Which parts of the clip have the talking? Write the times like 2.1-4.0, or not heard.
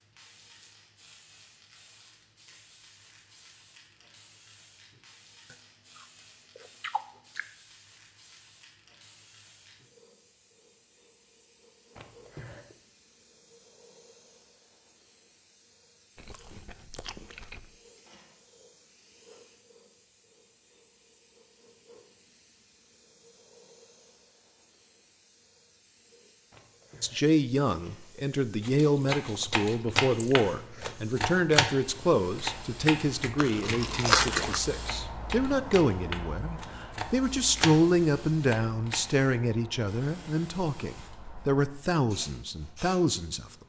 27.0-43.5.